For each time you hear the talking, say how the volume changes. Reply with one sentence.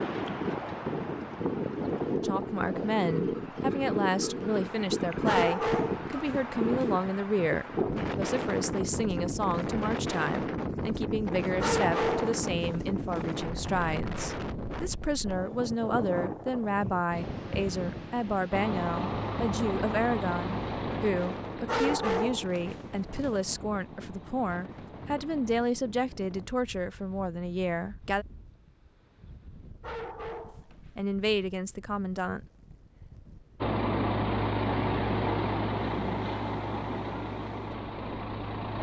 You can hear the talking from 2.2 to 28.2 s, at a steady volume; and briefly from 30.5 to 32.4 s.